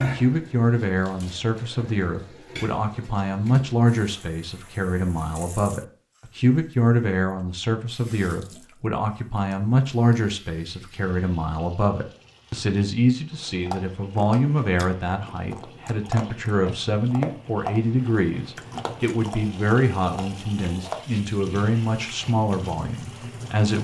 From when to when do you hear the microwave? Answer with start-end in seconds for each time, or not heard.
not heard.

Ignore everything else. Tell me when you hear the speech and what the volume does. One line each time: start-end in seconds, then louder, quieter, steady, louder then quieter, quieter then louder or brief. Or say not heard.
0.0-23.7 steady.